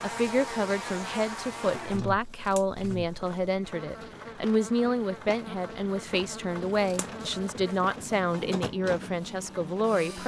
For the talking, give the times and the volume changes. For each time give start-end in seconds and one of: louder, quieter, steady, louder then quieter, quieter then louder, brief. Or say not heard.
0.0-10.2 steady.